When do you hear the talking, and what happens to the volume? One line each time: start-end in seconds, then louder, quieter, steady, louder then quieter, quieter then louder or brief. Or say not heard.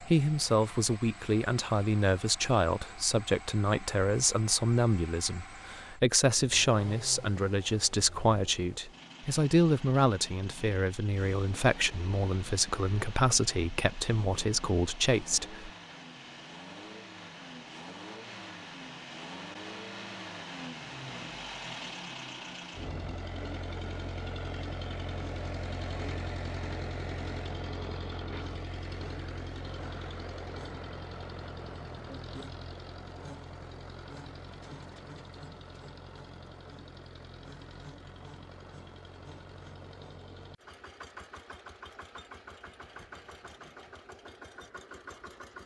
0.0-15.7 steady.